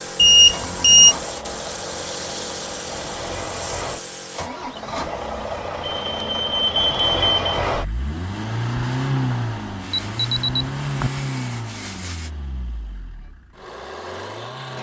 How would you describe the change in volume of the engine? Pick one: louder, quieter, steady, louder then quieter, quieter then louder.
louder then quieter.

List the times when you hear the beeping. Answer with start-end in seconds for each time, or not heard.
0.1-1.1, 5.8-7.6, 9.9-11.1.